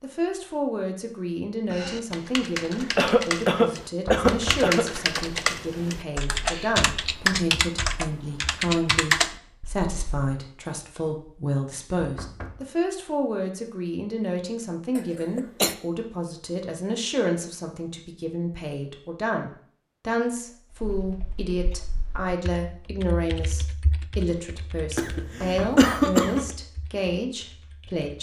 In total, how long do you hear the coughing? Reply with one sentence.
You can hear the coughing for 4 seconds altogether.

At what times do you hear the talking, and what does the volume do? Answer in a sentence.
The talking can be heard from 0.0 to 28.1 s, at a steady volume.